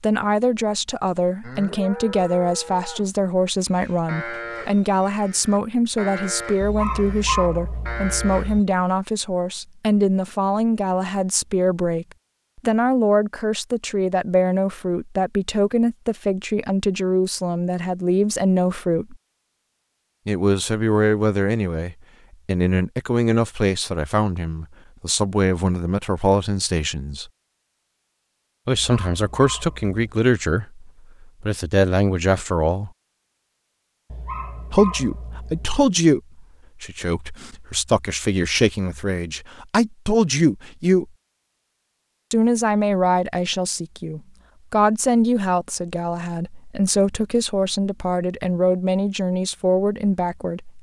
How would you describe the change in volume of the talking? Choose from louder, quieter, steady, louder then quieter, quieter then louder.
steady.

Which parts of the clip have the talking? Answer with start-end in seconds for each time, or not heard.
0.0-19.1, 20.2-27.3, 28.6-32.9, 34.7-41.0, 42.3-50.7.